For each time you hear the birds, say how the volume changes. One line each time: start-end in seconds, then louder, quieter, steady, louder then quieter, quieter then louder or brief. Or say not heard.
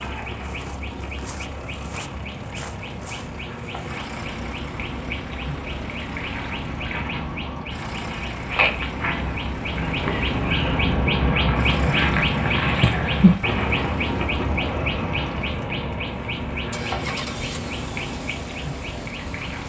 0.0-19.6 louder then quieter.